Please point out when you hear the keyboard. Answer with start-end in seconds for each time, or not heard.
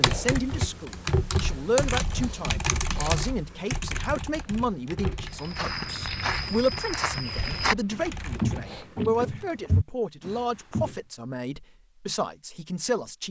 0.0-9.1.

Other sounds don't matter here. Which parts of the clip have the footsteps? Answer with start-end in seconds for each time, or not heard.
5.3-10.9.